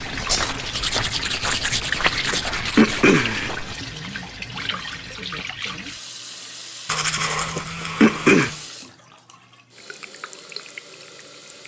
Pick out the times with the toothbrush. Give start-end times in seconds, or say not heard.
0.2-3.2, 6.8-8.7.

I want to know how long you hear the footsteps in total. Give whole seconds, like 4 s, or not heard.
4 s.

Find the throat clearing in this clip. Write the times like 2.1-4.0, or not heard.
2.3-3.5, 7.2-8.5.